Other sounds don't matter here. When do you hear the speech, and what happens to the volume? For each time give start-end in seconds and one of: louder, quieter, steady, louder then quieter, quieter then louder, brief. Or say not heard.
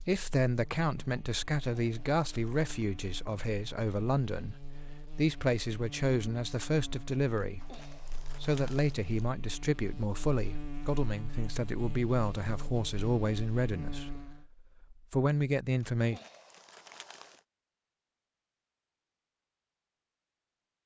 0.0-16.2 steady.